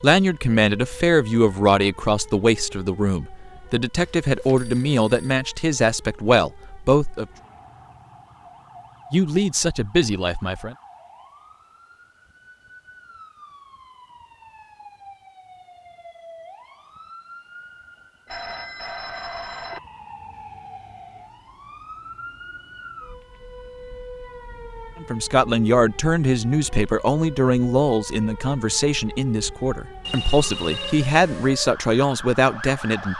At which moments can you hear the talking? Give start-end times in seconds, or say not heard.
0.0-7.2, 9.1-10.8, 25.0-33.1.